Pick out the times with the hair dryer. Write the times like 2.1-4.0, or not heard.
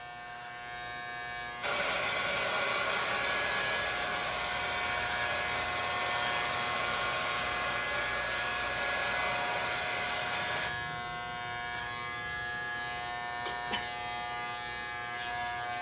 1.6-10.7.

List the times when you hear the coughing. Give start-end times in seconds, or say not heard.
13.4-13.9.